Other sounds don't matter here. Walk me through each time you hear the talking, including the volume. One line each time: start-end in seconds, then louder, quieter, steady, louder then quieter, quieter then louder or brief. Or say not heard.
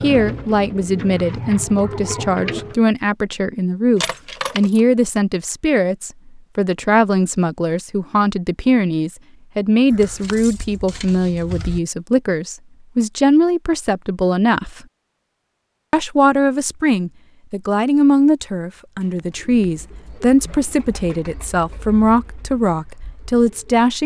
0.0-14.8 steady
15.9-24.0 steady.